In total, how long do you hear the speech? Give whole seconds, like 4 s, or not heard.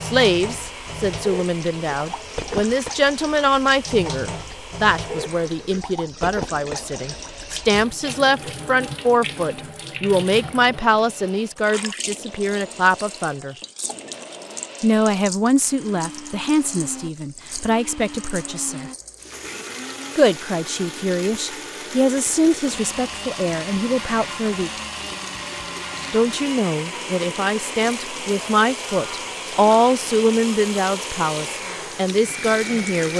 29 s.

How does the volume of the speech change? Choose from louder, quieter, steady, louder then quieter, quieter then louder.
steady.